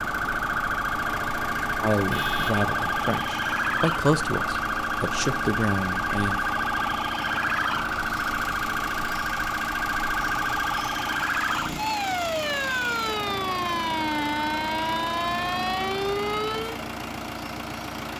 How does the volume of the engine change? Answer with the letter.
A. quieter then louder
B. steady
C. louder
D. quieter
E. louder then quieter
B.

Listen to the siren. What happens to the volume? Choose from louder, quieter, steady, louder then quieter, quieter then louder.
steady.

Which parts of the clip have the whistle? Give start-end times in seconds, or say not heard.
not heard.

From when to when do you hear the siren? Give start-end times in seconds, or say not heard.
0.0-16.8.